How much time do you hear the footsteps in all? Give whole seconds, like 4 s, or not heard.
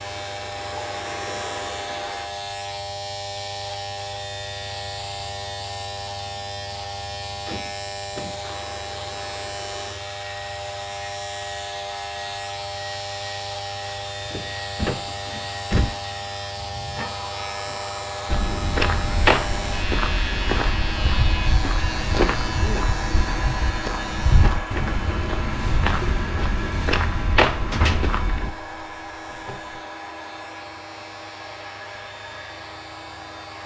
10 s.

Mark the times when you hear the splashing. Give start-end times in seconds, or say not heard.
not heard.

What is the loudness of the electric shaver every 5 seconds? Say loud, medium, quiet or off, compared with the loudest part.
loud, loud, loud, loud, loud, medium, medium.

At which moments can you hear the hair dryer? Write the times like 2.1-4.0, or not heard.
0.0-2.3, 8.4-33.6.